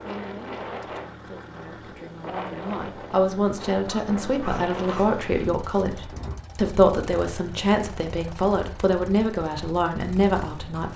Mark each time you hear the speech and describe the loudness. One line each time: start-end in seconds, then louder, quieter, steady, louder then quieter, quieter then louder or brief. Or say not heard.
0.0-10.9 louder.